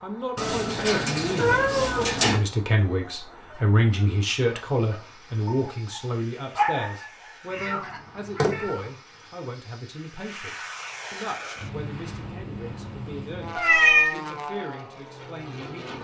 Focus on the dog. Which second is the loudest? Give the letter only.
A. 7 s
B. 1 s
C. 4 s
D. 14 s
A.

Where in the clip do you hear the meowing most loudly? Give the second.
14 s.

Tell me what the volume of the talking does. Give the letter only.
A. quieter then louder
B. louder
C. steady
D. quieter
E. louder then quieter
D.